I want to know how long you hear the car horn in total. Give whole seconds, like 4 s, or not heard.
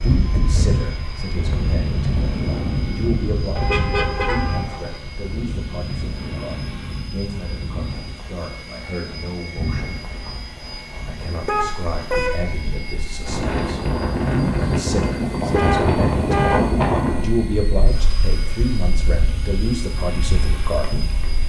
4 s.